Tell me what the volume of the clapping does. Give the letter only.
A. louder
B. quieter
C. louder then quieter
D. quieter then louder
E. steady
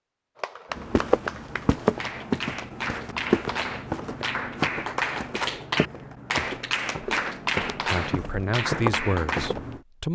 A.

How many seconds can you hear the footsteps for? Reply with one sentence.
You can hear the footsteps for 9 seconds altogether.